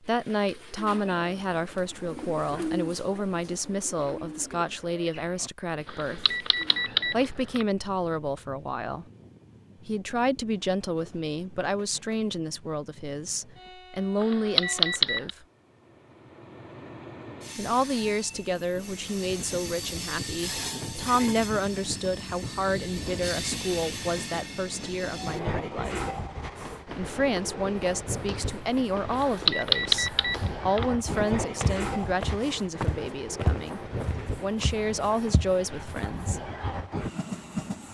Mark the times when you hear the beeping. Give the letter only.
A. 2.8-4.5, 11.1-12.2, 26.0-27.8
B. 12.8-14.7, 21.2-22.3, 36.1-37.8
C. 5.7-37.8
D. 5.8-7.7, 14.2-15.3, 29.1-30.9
D.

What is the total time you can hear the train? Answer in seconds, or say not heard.
32 s.